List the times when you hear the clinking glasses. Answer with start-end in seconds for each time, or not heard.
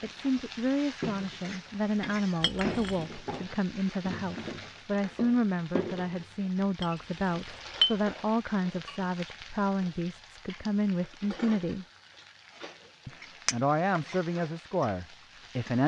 2.4-3.0, 6.8-8.0, 13.4-14.0.